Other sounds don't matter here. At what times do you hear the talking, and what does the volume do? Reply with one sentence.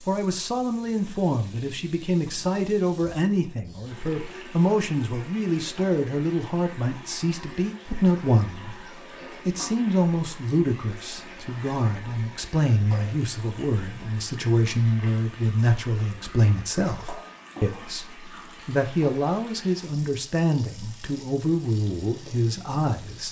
The talking can be heard from 0.0 to 23.2 s, at a steady volume.